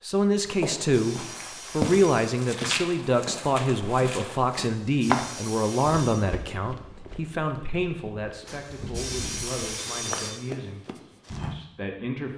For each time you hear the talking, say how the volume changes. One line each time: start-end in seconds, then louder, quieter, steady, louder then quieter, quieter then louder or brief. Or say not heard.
0.0-10.8 quieter
11.5-12.3 brief.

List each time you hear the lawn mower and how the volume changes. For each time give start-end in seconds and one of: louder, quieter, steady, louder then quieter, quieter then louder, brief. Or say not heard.
not heard.